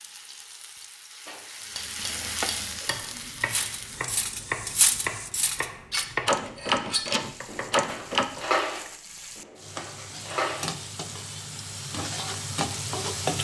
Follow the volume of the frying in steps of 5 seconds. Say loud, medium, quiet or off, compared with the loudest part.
medium, medium, loud.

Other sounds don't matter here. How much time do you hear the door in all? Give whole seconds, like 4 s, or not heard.
2 s.